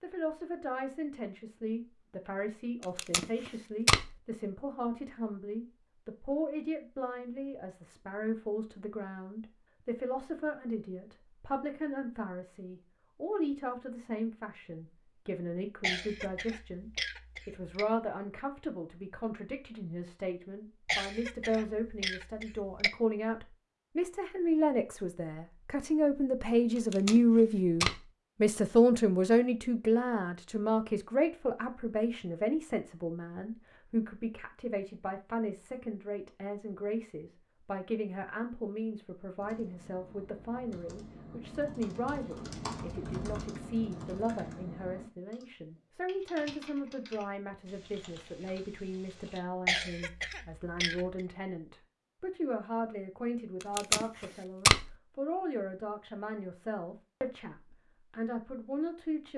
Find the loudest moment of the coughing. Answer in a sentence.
The loudest moment of the coughing is at 50 seconds.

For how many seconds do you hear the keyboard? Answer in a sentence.
The keyboard can be heard for 10 seconds in total.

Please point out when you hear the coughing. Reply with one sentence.
You can hear the coughing from 15.8 to 17.9 s, from 20.9 to 22.9 s and from 49.6 to 51.2 s.